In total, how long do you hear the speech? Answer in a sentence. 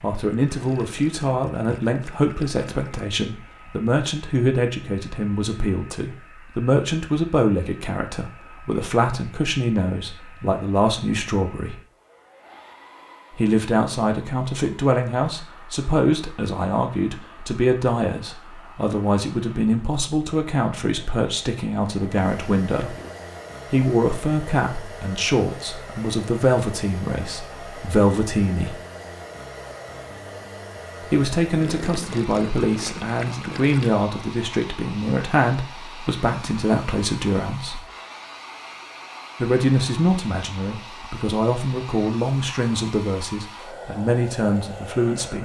The speech can be heard for 39 seconds in total.